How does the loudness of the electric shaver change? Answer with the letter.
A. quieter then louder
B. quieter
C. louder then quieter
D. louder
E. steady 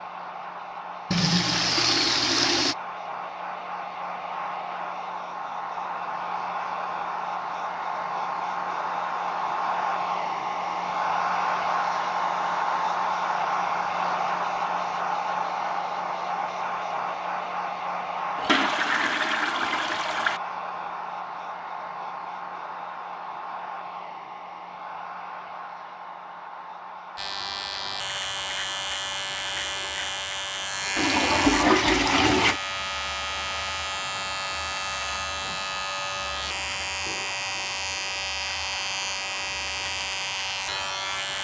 E.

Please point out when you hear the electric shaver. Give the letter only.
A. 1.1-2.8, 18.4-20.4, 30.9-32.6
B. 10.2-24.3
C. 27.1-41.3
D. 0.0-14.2
C.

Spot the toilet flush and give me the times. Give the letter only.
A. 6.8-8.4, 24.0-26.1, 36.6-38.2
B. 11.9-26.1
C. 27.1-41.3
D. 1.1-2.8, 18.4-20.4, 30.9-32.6
D.